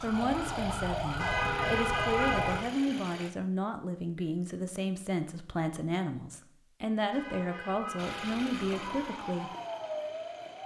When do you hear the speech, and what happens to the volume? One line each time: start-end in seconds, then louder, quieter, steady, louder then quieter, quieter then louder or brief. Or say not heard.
0.0-9.5 steady.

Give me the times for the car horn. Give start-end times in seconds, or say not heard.
1.1-2.7, 7.1-9.1.